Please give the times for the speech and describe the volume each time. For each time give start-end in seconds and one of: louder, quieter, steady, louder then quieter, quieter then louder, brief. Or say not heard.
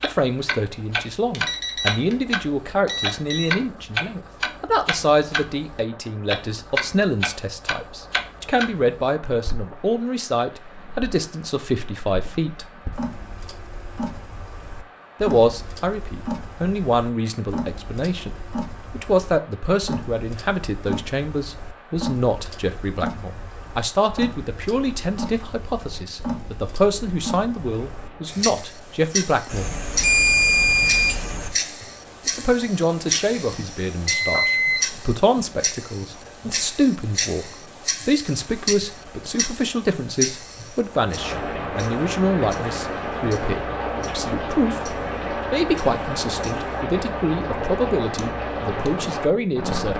0.0-12.7 steady
15.2-29.7 steady
32.2-49.9 steady.